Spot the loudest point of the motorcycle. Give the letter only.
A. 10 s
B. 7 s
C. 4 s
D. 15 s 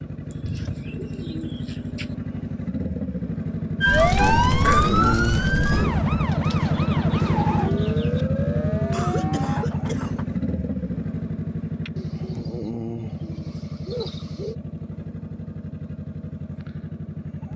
B.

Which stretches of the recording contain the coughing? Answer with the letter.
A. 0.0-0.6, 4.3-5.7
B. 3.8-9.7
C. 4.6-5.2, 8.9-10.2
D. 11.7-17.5
C.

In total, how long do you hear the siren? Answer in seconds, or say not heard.
6 s.